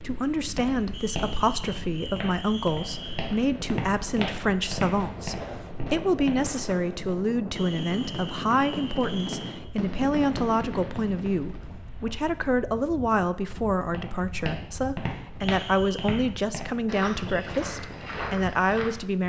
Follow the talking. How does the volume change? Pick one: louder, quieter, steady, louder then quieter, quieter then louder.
steady.